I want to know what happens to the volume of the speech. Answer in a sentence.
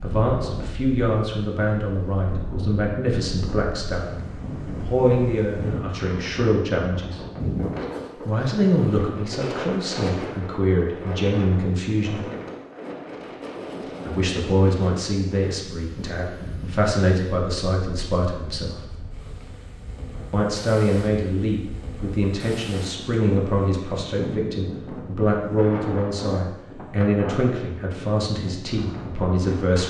The loudness of the speech stays about the same.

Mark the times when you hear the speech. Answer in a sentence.
You can hear the speech from 0.0 to 7.2 s, from 8.2 to 12.2 s, from 14.1 to 18.9 s and from 20.3 to 29.8 s.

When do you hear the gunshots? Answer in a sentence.
The gunshots can't be heard in this clip.